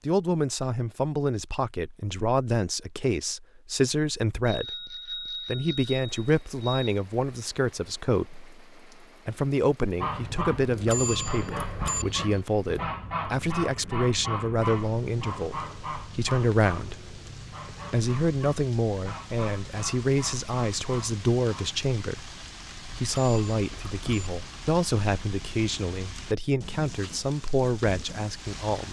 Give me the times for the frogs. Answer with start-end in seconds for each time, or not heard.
not heard.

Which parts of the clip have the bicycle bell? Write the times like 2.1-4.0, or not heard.
4.5-7.0, 10.8-12.1, 23.1-24.3.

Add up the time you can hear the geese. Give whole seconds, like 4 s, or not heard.
12 s.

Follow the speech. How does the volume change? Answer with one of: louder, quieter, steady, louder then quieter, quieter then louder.
steady.